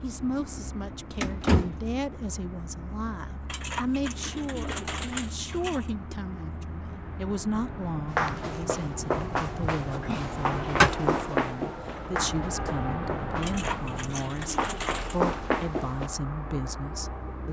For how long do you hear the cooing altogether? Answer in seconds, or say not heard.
4 s.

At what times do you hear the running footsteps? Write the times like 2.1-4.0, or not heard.
8.1-16.1.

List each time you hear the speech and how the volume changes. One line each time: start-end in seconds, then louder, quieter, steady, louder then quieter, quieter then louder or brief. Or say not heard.
0.0-17.4 steady.